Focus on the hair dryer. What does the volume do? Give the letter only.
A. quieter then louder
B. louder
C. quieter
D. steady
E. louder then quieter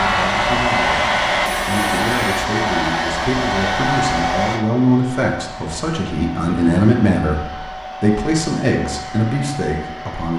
C.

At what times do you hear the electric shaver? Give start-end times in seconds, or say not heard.
0.0-2.5.